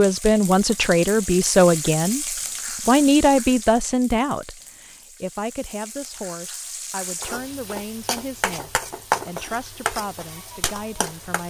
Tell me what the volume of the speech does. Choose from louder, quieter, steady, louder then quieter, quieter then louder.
quieter.